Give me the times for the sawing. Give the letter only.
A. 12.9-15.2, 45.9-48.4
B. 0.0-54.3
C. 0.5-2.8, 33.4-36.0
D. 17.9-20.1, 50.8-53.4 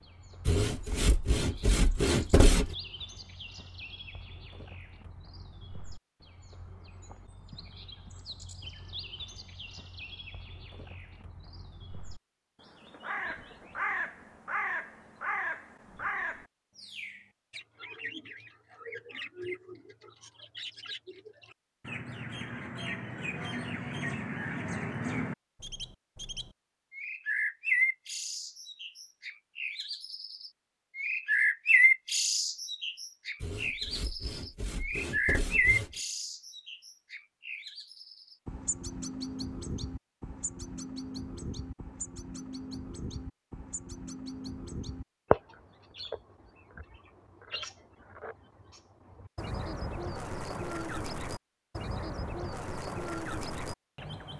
C.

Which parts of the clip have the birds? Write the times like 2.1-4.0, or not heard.
0.0-54.3.